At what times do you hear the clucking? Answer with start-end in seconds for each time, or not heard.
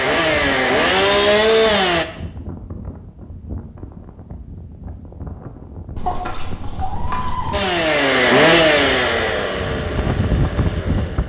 6.0-7.6.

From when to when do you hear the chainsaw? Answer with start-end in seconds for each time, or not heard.
0.0-2.0, 7.5-11.2.